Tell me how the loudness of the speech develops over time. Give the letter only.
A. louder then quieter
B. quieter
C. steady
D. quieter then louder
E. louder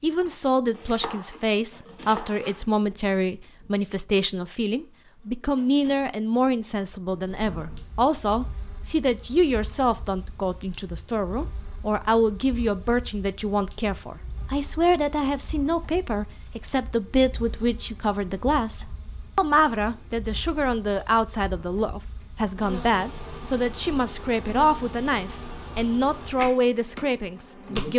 C.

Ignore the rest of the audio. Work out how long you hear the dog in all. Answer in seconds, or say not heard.
not heard.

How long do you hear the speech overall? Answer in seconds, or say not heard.
28 s.